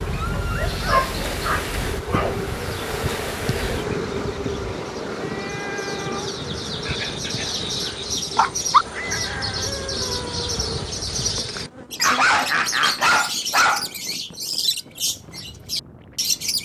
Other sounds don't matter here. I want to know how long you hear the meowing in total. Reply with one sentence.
You can hear the meowing for 3 seconds altogether.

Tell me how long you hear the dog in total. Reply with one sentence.
The dog can be heard for 6 seconds in total.